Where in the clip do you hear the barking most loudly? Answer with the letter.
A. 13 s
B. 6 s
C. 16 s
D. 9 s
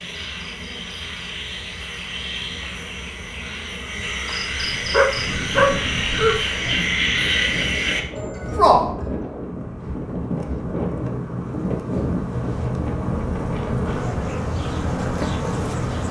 B.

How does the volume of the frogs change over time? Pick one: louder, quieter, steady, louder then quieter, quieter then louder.
louder.